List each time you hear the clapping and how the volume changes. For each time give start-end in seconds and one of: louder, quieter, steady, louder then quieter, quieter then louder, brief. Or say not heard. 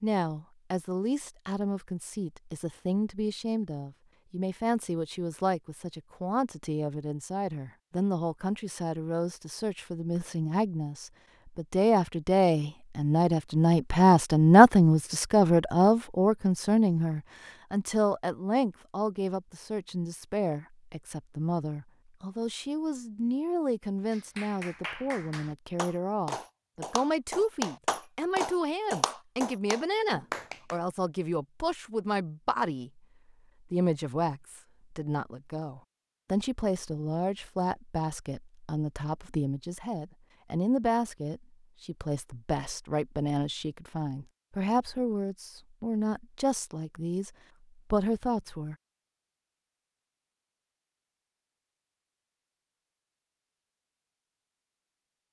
24.1-30.8 louder.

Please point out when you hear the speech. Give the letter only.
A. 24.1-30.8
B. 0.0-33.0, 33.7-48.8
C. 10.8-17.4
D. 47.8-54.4
B.